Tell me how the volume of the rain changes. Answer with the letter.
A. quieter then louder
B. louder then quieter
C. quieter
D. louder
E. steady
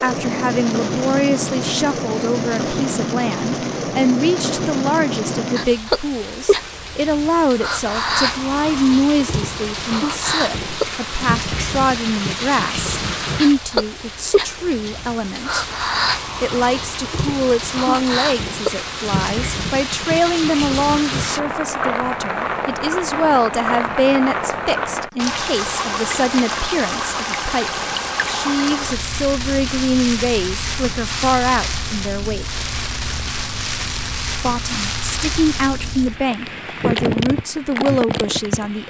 E.